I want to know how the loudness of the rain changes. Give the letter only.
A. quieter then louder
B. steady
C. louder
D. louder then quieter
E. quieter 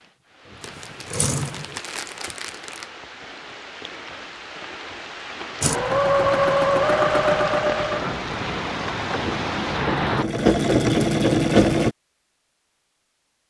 C.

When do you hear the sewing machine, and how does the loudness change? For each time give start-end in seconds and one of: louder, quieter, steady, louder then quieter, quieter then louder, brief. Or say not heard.
0.0-1.8 brief
5.6-11.9 quieter then louder.